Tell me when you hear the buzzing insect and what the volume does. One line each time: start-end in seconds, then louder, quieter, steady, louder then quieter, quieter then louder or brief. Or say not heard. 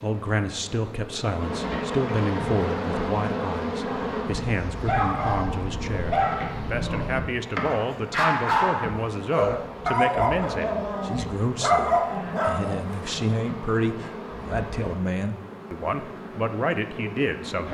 0.0-17.6 quieter.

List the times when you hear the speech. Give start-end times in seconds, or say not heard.
0.0-17.6.